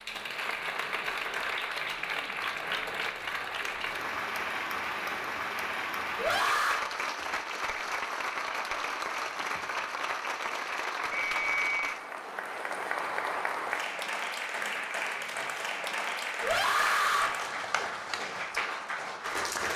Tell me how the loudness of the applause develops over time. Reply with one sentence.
The loudness of the applause stays about the same.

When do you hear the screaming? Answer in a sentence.
The screaming can be heard from 6.2 to 6.8 s and from 16.4 to 17.4 s.